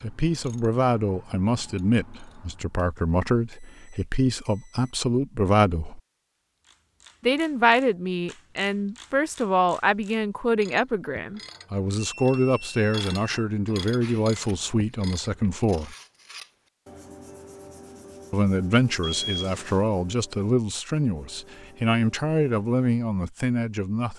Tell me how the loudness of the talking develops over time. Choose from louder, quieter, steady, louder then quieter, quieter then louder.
steady.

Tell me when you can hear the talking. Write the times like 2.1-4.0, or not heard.
0.0-6.0, 7.2-15.9, 18.3-24.1.